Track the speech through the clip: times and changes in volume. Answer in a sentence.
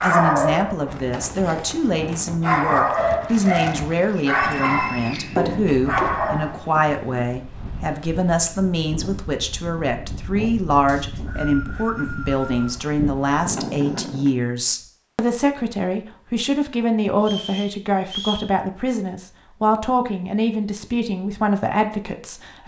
The speech can be heard from 0.0 to 22.6 s, at a steady volume.